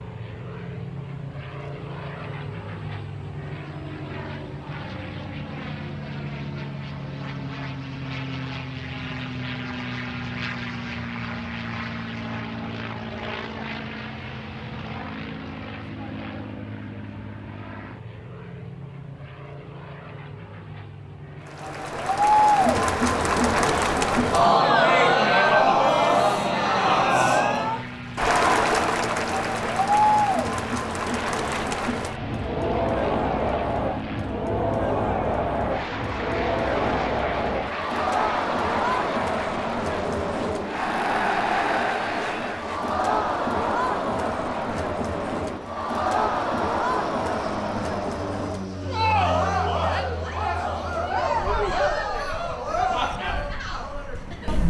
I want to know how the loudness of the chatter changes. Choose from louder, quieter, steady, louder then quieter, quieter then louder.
quieter.